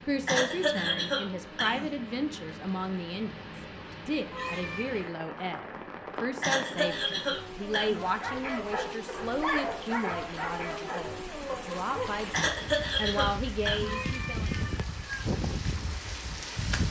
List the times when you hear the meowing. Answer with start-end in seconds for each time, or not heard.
4.2-5.1, 13.7-15.3.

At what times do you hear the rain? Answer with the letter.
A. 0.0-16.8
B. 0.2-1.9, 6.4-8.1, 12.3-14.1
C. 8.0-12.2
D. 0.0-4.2
A.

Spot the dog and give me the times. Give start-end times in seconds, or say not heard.
8.0-12.2.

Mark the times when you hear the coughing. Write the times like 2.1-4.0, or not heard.
0.2-1.9, 6.4-8.1, 12.3-14.1.